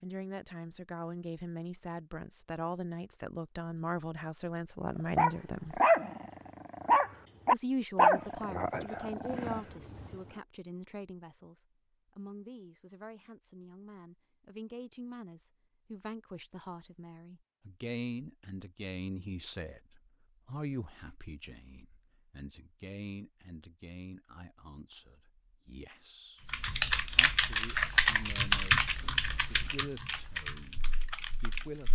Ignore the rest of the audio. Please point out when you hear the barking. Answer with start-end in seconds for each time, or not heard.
5.2-10.2.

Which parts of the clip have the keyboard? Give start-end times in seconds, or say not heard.
26.4-31.9.